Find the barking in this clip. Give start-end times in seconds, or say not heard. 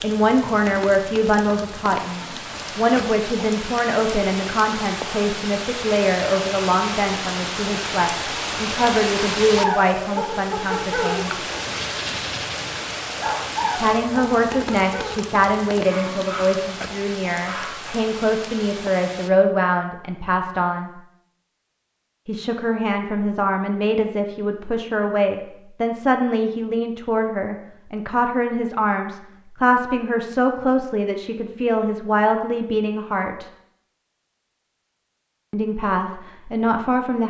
9.6-16.6, 17.4-17.9.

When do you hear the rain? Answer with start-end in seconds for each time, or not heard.
0.0-19.3.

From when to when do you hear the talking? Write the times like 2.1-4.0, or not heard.
0.0-11.3, 13.8-20.9, 22.2-33.5, 35.5-37.2.